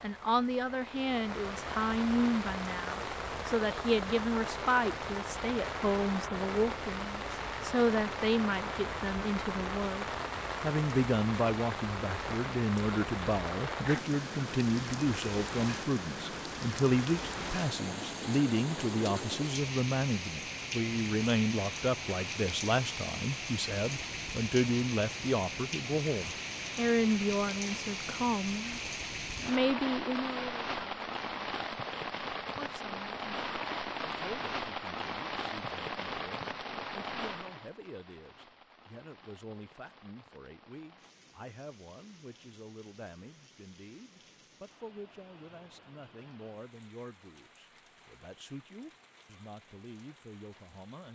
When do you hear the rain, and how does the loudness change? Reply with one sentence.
You can hear the rain from 0.0 to 51.0 s, getting quieter.